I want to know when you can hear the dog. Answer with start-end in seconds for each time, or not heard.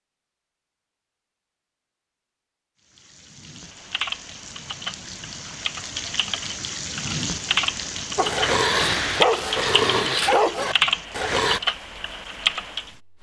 8.2-11.6.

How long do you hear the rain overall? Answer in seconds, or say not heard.
10 s.